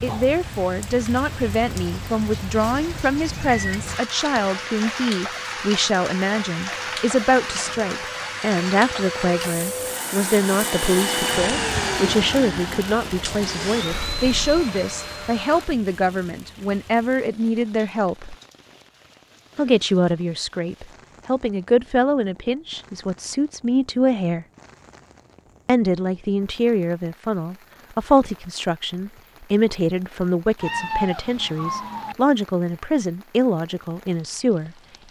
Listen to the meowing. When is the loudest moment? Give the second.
31 s.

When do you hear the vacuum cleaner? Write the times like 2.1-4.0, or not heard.
3.9-15.7.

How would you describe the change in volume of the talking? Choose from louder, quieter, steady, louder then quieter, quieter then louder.
steady.